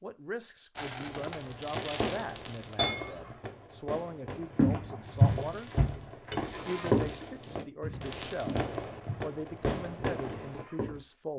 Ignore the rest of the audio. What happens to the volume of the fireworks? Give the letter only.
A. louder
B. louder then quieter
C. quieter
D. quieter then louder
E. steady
D.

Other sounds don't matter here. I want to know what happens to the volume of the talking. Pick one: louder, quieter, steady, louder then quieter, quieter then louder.
steady.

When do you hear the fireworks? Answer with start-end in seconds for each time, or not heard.
0.8-10.7.